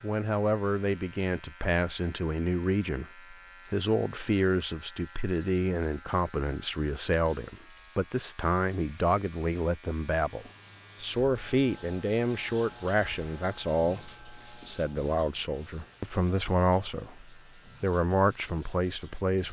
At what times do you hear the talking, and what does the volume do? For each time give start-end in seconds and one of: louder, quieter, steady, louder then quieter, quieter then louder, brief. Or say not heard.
0.0-19.4 steady.